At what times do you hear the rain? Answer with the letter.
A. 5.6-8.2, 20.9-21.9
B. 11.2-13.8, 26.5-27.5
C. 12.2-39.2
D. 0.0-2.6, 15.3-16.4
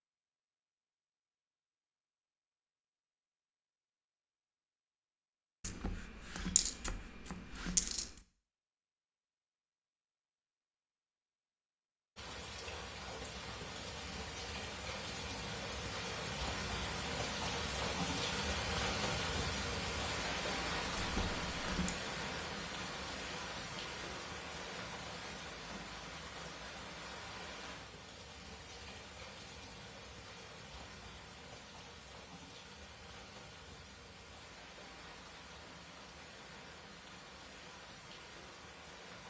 C.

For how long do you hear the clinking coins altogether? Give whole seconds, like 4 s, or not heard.
4 s.